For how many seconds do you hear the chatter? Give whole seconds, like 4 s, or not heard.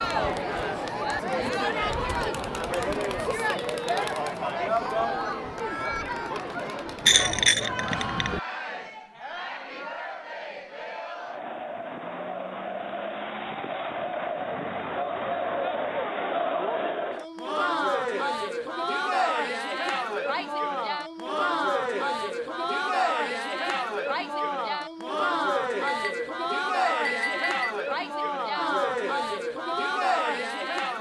31 s.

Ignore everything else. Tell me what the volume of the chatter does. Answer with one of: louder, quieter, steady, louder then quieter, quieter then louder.
quieter then louder.